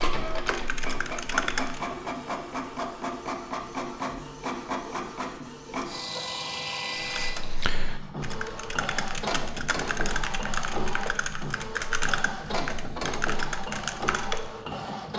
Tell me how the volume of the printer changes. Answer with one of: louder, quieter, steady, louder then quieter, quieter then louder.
steady.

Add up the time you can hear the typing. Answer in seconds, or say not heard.
9 s.